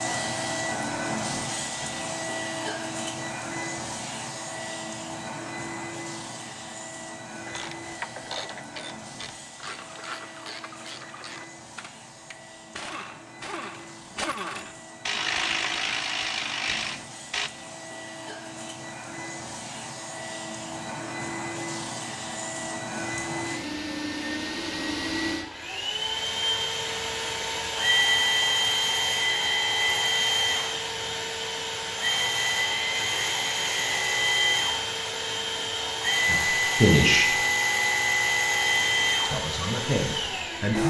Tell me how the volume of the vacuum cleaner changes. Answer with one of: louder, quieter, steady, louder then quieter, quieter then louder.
quieter then louder.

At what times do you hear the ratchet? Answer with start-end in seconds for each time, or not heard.
7.5-17.5.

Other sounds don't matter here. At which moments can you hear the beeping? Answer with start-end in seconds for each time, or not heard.
not heard.